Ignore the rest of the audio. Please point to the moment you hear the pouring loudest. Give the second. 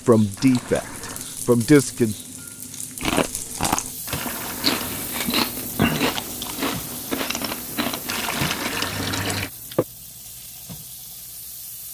9 s.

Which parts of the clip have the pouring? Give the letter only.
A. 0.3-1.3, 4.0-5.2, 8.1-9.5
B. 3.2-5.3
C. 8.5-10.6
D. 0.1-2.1
A.